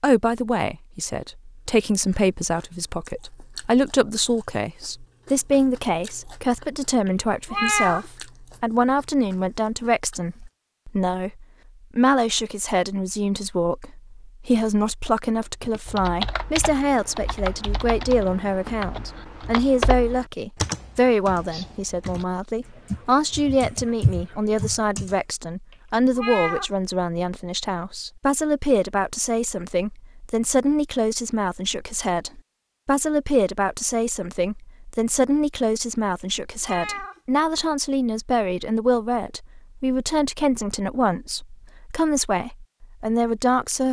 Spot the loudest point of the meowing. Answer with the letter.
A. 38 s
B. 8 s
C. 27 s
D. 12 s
B.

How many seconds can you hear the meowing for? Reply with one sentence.
You can hear the meowing for 3 seconds altogether.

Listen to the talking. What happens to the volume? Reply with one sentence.
The volume of the talking stays about the same.